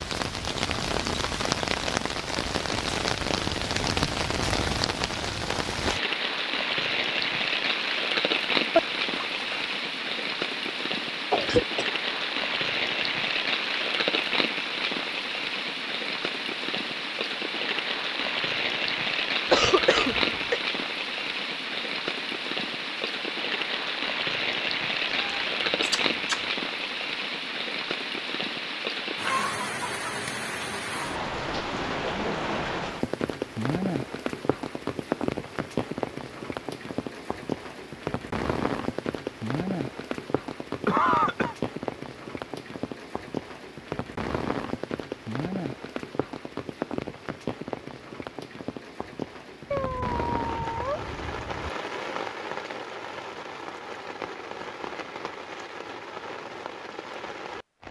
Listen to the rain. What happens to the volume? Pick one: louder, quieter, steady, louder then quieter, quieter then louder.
quieter.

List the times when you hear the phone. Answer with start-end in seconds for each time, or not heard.
not heard.